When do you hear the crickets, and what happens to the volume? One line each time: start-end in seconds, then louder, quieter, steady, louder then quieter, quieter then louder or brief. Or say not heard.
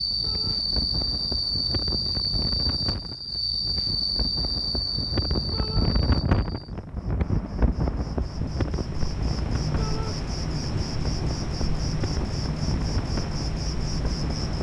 0.0-14.5 quieter then louder.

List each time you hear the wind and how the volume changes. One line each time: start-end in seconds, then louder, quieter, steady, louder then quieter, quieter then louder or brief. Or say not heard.
0.0-14.5 louder then quieter.